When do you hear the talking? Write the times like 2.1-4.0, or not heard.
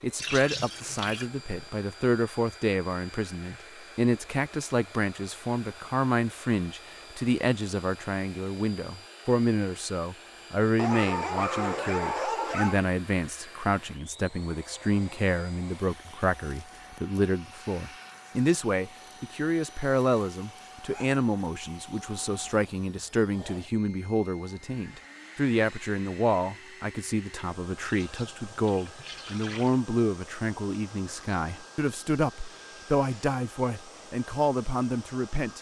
0.0-35.5.